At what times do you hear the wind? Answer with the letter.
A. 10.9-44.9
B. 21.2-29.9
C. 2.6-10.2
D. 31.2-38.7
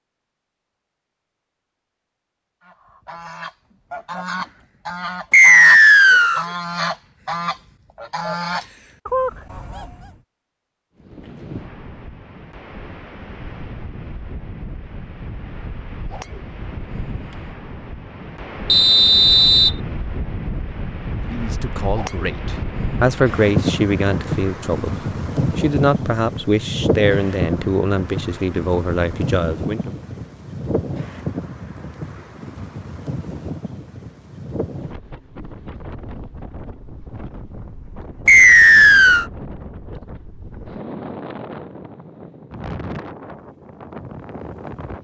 A.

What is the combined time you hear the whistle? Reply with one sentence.
You can hear the whistle for 3 seconds altogether.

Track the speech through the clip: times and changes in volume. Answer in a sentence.
You can hear the speech from 21.2 to 29.9 s, at a steady volume.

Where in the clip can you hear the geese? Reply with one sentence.
The geese can be heard from 2.6 to 10.2 s.